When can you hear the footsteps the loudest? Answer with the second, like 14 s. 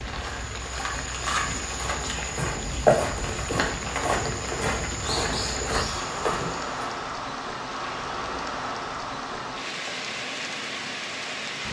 3 s.